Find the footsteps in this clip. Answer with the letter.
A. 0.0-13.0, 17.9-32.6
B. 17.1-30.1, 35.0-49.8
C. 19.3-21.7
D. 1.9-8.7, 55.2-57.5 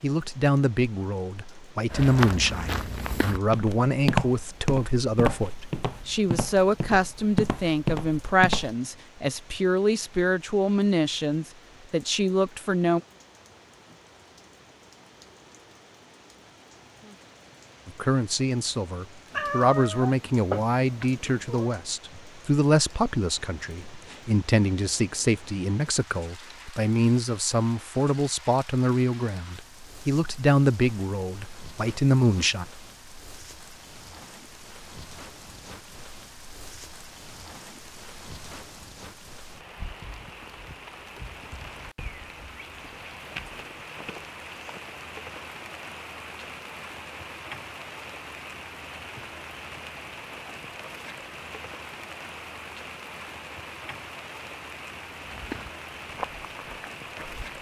D.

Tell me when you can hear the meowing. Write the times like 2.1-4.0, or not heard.
19.3-21.7.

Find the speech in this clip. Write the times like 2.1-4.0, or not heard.
0.0-13.0, 17.9-32.6.